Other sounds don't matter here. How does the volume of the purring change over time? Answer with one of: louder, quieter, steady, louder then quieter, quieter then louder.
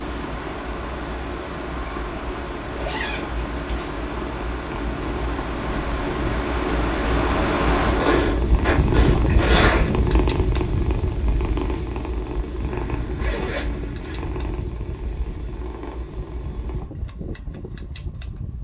louder then quieter.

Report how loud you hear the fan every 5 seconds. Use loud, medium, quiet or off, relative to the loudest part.
medium, loud, medium, quiet.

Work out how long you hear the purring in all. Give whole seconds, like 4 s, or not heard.
17 s.